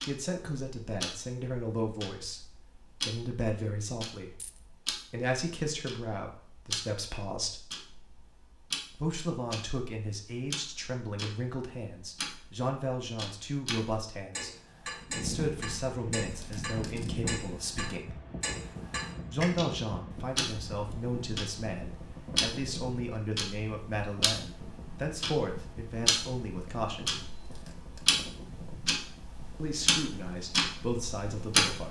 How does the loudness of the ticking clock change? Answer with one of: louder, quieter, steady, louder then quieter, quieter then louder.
louder.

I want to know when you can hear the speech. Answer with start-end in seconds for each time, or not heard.
0.0-7.7, 8.9-14.5, 15.2-18.1, 19.3-27.2, 29.6-31.8.